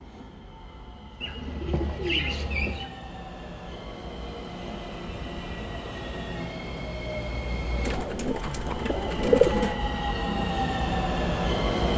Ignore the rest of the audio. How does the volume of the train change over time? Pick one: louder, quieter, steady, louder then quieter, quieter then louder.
louder.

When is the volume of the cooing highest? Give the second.
9 s.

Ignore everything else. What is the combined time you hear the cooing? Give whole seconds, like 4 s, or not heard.
4 s.